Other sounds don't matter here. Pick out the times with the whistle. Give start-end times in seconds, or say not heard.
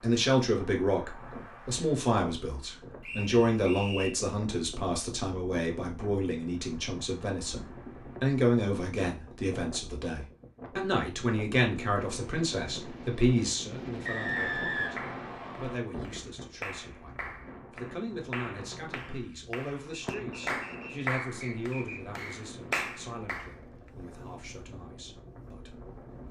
3.0-4.2, 14.1-15.8, 20.1-22.4.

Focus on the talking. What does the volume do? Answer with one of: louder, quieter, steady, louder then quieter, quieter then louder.
quieter.